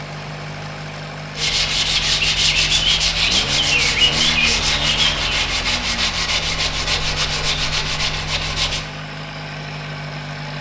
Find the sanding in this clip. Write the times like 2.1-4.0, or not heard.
1.4-8.8.